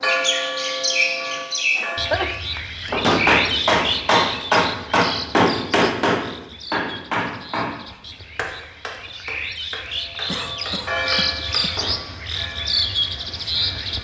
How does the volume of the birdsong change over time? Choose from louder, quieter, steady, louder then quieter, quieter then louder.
quieter then louder.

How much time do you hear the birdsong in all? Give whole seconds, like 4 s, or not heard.
14 s.